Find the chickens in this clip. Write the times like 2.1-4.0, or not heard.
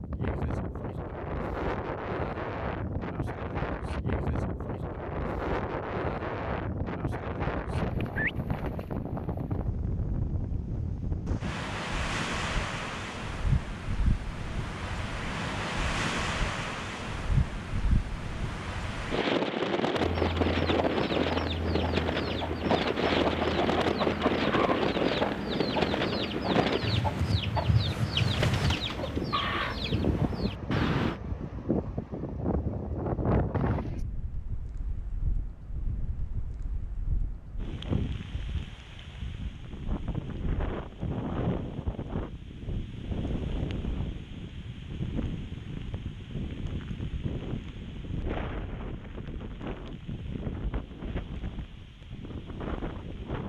19.9-31.2.